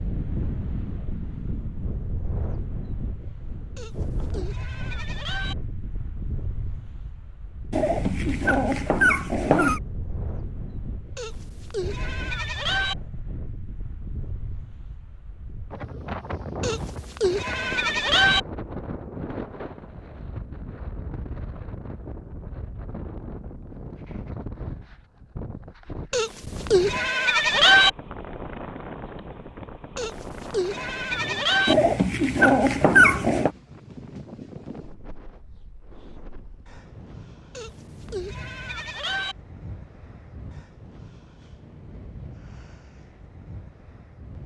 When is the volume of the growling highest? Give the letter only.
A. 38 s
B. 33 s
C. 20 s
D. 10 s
B.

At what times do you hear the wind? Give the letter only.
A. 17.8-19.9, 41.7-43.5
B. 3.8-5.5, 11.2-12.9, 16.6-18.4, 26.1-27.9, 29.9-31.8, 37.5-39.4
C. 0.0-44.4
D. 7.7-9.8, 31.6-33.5
C.